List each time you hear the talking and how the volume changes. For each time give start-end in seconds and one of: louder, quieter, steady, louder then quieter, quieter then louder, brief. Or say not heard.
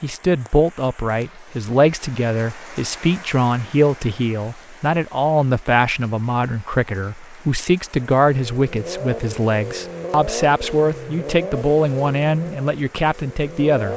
0.0-13.9 steady.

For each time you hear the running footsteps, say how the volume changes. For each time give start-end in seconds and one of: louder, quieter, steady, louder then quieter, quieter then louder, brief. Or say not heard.
not heard.